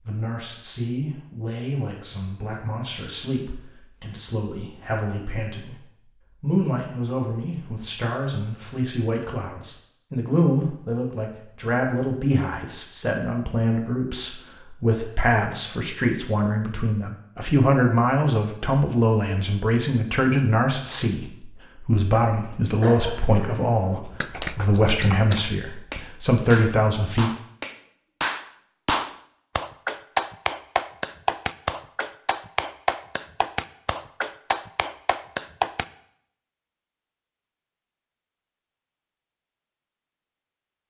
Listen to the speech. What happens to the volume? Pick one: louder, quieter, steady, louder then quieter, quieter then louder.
louder.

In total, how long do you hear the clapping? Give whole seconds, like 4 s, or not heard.
12 s.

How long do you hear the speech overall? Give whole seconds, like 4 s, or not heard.
27 s.